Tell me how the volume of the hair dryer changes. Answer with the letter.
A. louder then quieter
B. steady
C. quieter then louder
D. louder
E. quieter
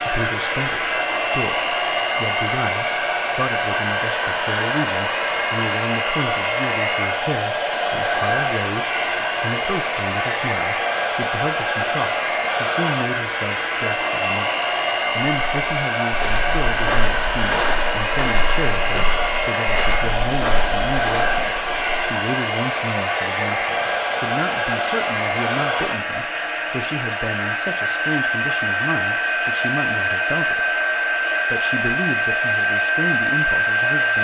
B.